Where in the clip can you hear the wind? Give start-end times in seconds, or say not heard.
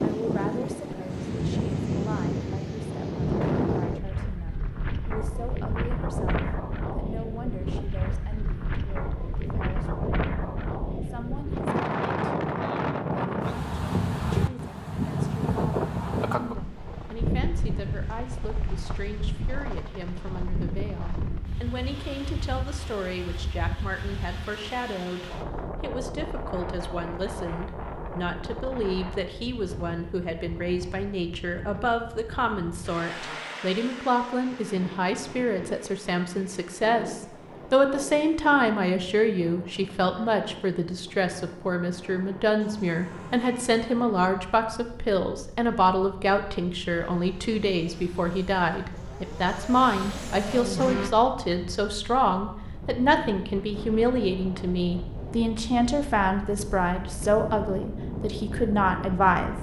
0.0-59.5.